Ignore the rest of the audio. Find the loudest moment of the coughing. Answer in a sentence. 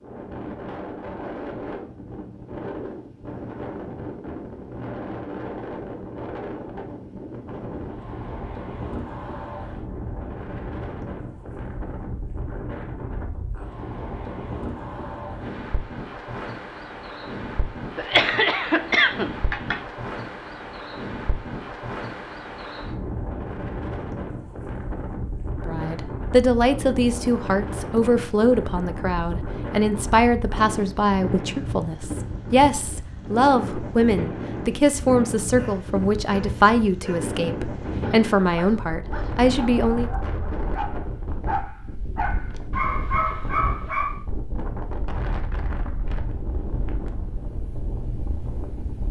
The volume of the coughing peaks at 18 seconds.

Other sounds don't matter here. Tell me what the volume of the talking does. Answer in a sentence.
The volume of the talking stays about the same.